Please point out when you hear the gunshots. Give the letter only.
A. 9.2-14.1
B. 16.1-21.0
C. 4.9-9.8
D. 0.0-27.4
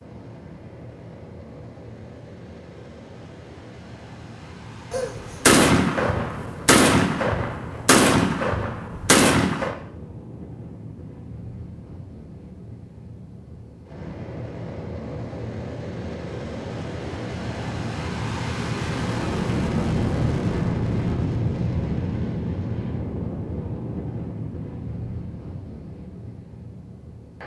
C.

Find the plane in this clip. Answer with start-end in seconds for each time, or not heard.
0.0-27.4.